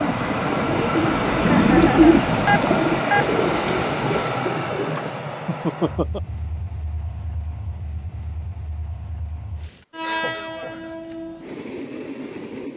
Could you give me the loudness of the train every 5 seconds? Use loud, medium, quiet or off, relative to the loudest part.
loud, quiet, medium.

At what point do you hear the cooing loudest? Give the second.
2 s.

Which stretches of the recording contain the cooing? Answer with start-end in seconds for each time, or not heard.
0.0-5.1.